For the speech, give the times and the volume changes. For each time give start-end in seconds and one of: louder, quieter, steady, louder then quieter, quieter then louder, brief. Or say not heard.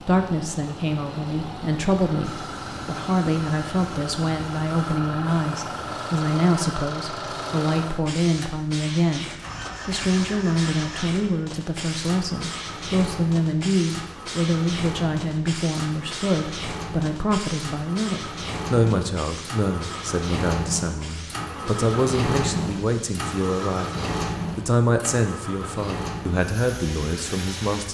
0.0-27.8 steady.